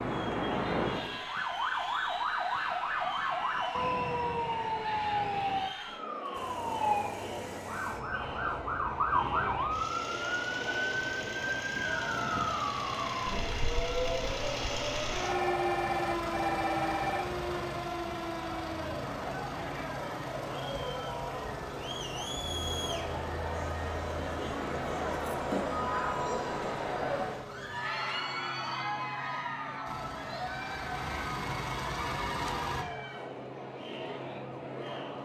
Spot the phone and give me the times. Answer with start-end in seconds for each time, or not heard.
9.1-9.6, 15.2-17.2, 31.9-32.9.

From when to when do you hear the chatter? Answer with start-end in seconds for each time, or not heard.
0.0-35.2.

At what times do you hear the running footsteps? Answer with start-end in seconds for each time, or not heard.
not heard.